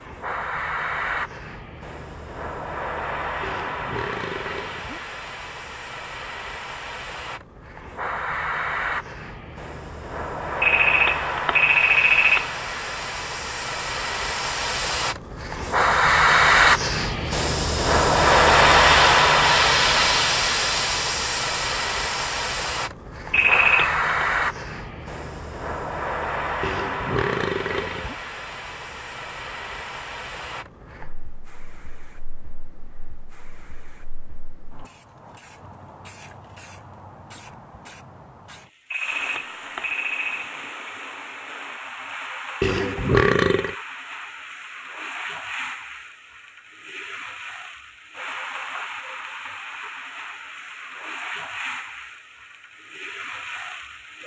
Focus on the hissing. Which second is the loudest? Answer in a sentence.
The loudest moment of the hissing is at 19 seconds.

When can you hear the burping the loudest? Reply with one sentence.
The volume of the burping peaks at 43 seconds.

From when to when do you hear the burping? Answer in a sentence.
You can hear the burping from 3.4 to 5.0 s, from 26.6 to 28.1 s and from 42.6 to 43.8 s.